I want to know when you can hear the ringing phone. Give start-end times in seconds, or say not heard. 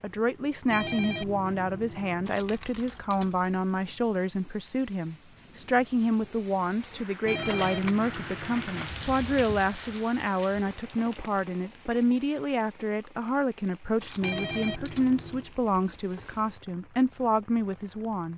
0.7-2.4, 7.2-8.8, 14.2-15.5.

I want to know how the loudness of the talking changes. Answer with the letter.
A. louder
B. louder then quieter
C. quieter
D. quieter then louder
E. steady
E.